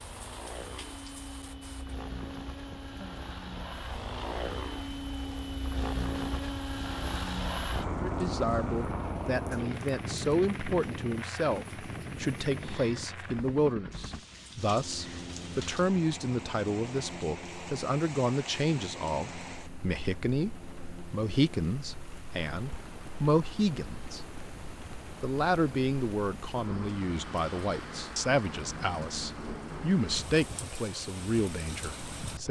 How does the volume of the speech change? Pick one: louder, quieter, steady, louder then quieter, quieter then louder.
steady.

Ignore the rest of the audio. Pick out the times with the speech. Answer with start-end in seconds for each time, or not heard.
8.0-24.4, 25.2-32.4.